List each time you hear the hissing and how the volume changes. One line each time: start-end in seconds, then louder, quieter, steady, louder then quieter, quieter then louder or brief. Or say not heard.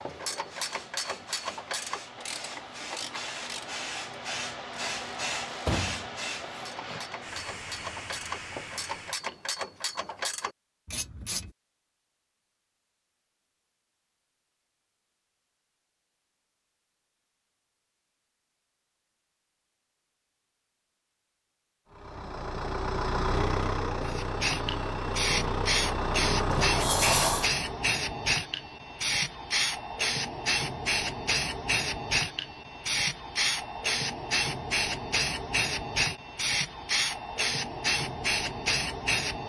0.0-9.8 louder then quieter
24.0-39.4 steady.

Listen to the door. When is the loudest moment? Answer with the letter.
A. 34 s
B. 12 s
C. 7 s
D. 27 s
D.